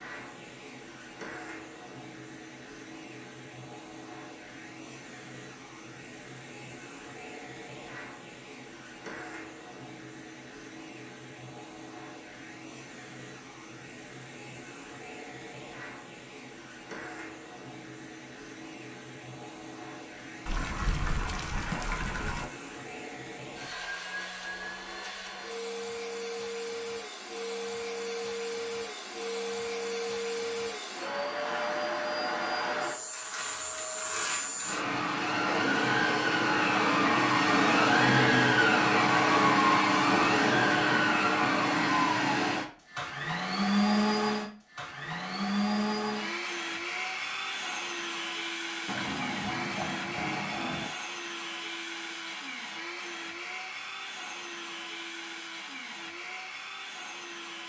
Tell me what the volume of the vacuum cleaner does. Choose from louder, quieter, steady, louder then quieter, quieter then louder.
louder then quieter.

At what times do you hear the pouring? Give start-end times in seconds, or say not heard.
20.4-22.4, 48.9-50.9.